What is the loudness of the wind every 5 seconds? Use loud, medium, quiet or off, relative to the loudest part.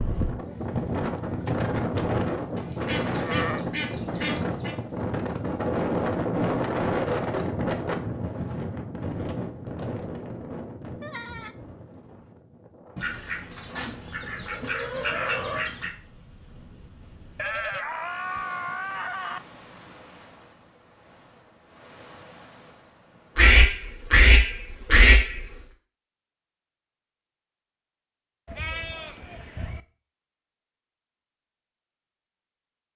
loud, loud, quiet, quiet, quiet, off, off.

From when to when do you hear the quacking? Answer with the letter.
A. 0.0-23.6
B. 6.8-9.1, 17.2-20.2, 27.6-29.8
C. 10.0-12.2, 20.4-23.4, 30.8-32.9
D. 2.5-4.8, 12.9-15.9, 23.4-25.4
D.